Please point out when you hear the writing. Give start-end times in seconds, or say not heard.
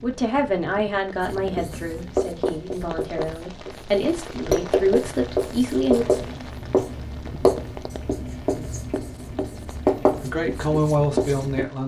1.2-11.7.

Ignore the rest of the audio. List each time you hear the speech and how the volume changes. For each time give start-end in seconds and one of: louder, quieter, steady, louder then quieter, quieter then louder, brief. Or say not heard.
0.0-6.1 quieter then louder
10.2-11.8 brief.